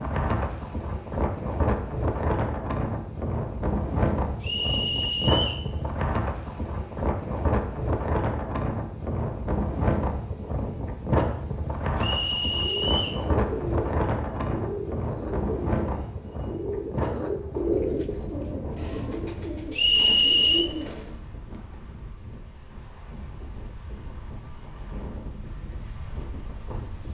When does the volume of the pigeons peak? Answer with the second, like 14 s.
18 s.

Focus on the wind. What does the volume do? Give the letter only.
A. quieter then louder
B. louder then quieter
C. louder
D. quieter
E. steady
D.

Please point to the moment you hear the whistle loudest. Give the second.
20 s.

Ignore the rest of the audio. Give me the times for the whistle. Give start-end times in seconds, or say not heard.
4.4-5.7, 11.9-13.2, 19.7-20.7.